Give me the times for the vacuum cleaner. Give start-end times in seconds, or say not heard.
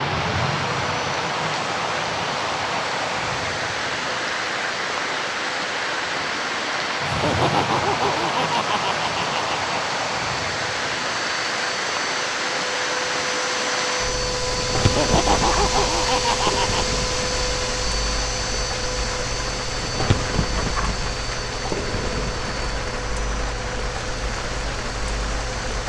0.0-25.8.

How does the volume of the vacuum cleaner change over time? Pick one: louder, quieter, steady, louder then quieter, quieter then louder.
louder then quieter.